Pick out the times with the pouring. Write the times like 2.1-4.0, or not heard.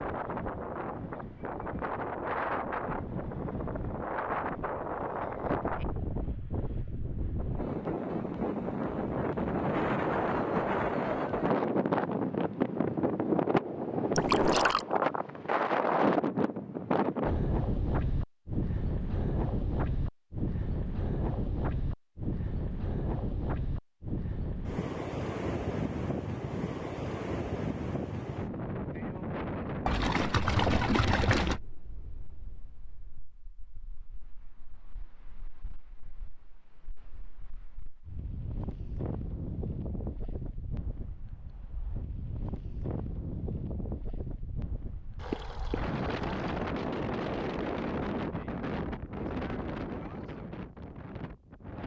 14.2-14.8, 29.9-31.6, 45.1-46.7.